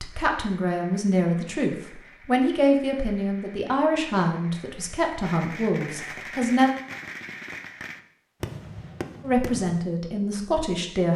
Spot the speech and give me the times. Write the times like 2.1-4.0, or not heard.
0.0-6.7, 9.2-11.1.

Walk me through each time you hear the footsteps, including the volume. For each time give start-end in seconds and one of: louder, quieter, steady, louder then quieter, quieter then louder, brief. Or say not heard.
not heard.